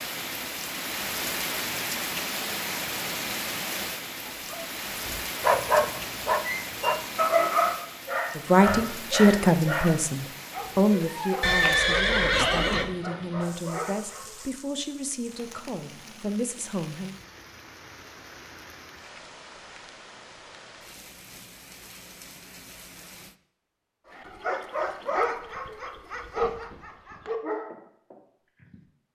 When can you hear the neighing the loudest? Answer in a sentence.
The volume of the neighing peaks at 12 seconds.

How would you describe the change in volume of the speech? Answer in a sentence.
The loudness of the speech goes down.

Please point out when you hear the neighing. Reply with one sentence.
You can hear the neighing from 11.4 to 12.9 s.